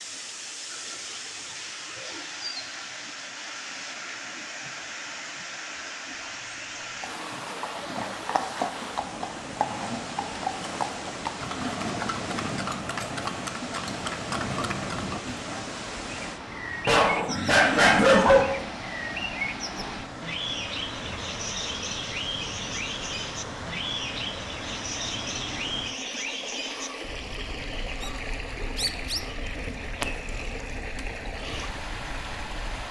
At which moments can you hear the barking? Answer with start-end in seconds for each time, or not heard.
6.1-7.0, 16.9-18.4.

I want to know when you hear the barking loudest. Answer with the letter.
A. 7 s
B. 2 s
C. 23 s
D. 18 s
D.